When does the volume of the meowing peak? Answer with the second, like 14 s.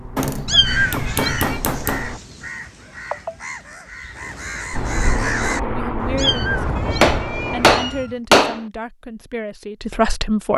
1 s.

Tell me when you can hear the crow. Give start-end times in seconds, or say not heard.
0.7-7.2.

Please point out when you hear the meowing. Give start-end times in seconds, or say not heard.
0.5-1.6, 6.2-8.2.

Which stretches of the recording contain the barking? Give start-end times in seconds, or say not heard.
not heard.